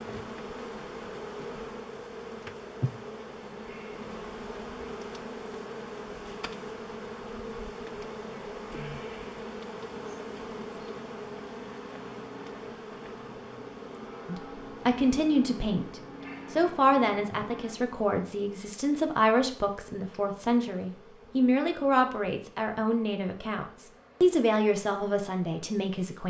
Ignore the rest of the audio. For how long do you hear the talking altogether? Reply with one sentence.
The talking can be heard for 11 seconds in total.